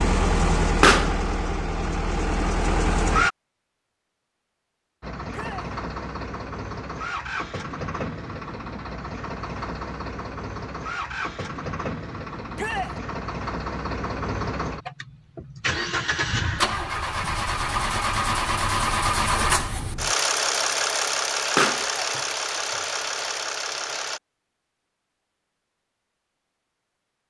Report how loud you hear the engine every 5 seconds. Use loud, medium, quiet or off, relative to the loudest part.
loud, medium, medium, loud, loud, off.